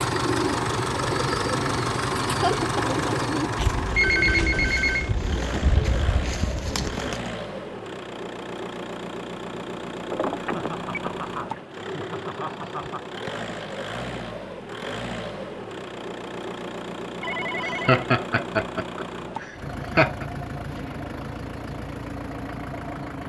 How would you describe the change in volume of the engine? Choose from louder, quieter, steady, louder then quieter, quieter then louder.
quieter.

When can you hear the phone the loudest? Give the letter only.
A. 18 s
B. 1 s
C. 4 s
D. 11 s
C.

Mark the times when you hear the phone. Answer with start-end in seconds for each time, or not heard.
4.0-5.2, 10.1-11.2, 17.2-18.0.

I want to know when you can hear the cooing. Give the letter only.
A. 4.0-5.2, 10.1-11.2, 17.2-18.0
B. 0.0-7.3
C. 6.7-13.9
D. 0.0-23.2
B.